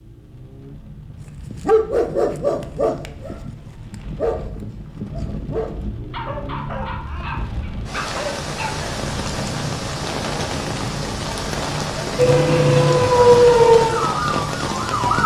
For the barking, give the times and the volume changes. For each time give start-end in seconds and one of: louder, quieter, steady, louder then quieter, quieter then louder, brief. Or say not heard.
1.1-8.8 quieter.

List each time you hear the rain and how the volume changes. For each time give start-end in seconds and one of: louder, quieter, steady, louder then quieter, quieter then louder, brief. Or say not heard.
0.0-15.2 louder.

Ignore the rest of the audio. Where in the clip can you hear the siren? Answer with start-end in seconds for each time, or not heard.
12.2-15.2.